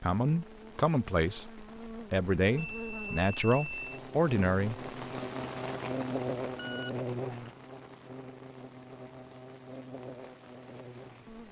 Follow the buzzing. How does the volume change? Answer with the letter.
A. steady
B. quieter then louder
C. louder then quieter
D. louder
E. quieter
C.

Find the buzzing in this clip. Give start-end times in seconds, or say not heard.
0.2-11.4.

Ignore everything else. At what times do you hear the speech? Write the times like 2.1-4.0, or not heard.
0.0-1.5, 2.1-4.8.